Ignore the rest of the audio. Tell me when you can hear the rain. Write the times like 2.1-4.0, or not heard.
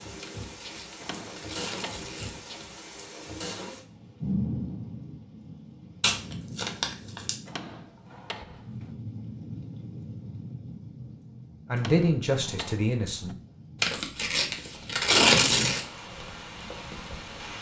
0.0-17.5.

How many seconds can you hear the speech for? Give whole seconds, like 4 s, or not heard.
2 s.